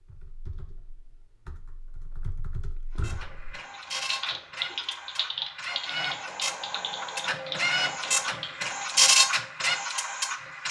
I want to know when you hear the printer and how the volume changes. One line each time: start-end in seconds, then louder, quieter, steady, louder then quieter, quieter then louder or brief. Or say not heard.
3.0-10.6 louder.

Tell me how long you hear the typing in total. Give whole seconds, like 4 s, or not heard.
9 s.